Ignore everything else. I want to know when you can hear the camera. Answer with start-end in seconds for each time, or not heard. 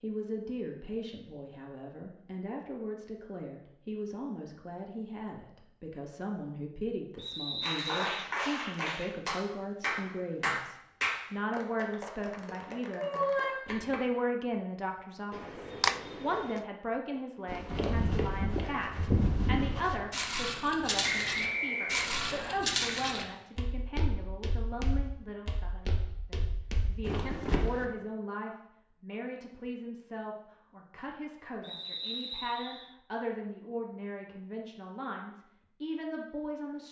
15.3-16.6.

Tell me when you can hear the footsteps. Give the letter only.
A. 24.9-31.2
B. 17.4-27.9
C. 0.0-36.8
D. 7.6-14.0
B.